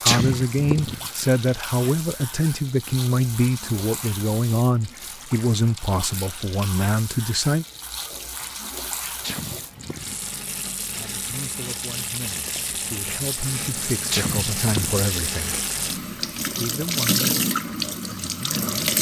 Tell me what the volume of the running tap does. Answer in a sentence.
The volume of the running tap goes up.